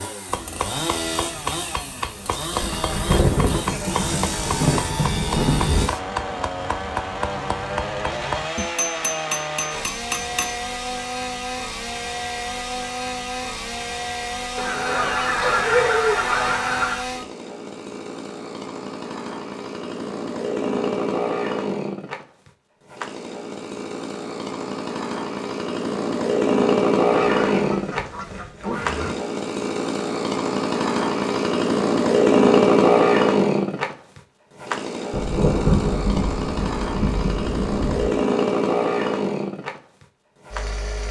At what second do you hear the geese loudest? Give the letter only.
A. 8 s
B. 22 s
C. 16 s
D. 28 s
C.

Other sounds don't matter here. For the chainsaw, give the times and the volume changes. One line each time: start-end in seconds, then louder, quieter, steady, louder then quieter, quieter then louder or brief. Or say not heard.
0.0-41.0 louder.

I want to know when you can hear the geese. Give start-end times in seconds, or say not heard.
14.6-17.1, 27.2-29.1.